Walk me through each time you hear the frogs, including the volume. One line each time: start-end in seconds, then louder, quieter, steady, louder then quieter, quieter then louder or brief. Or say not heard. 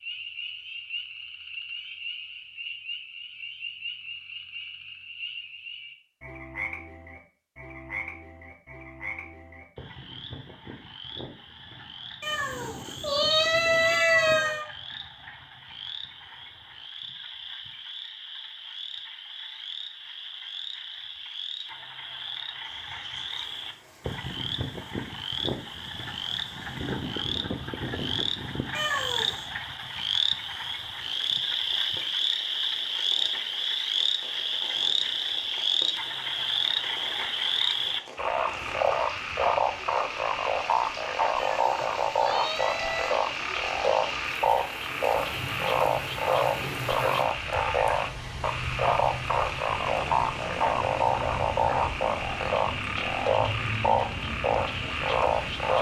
0.0-55.7 louder.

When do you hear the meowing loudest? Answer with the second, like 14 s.
14 s.